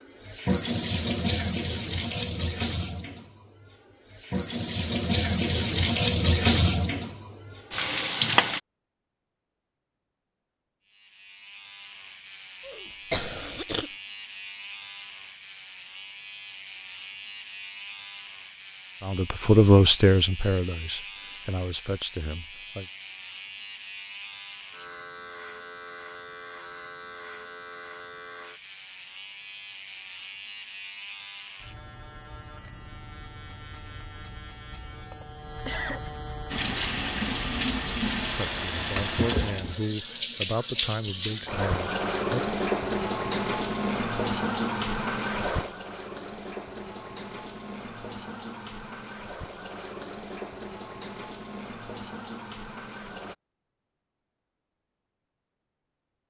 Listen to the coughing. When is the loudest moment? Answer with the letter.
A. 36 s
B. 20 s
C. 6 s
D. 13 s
D.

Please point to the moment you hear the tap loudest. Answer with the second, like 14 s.
6 s.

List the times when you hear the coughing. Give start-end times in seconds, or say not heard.
12.7-13.9, 35.1-36.0.